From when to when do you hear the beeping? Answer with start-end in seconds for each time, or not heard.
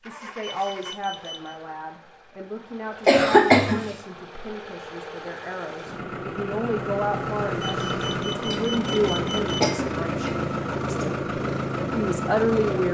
0.4-1.6, 7.6-9.7.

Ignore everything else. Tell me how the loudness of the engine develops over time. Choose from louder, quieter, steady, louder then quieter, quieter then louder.
louder.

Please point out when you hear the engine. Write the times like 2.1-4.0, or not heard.
0.0-12.8.